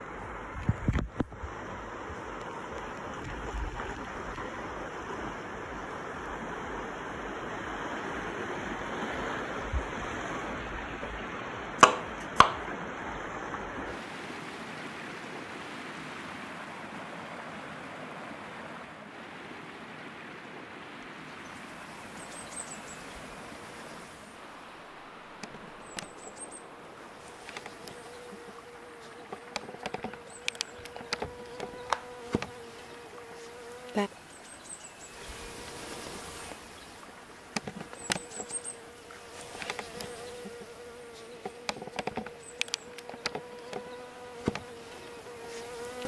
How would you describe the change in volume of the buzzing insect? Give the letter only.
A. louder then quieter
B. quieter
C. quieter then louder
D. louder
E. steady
D.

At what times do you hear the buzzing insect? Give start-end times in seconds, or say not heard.
21.2-46.0.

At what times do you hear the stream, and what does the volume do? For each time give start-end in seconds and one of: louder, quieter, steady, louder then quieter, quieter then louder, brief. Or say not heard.
0.0-46.0 quieter.